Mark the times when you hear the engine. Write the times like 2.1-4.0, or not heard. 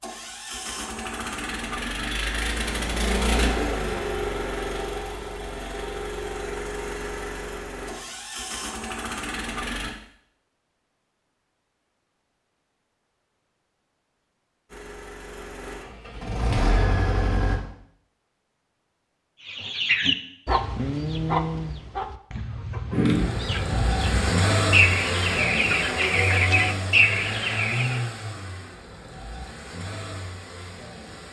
0.0-9.9, 14.7-17.6, 22.9-31.2.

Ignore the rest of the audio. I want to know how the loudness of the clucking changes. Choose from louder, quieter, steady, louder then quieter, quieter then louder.
quieter then louder.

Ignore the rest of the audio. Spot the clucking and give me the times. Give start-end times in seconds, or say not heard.
19.4-28.0.